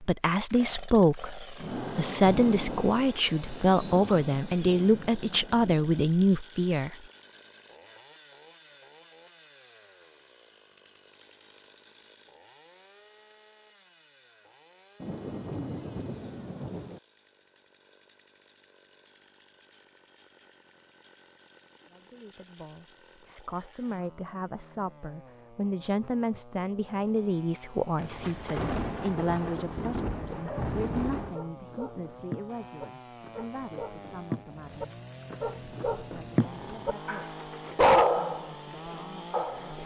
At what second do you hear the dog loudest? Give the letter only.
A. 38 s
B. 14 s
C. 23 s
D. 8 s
A.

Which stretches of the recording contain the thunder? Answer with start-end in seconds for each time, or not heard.
1.6-6.0, 15.0-17.0, 27.9-31.4.